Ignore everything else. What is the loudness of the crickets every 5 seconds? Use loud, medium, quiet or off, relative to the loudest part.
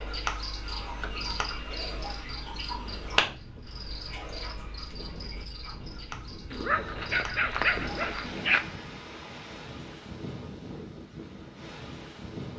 loud, medium, off.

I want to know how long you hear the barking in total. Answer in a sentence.
The barking can be heard for 2 seconds in total.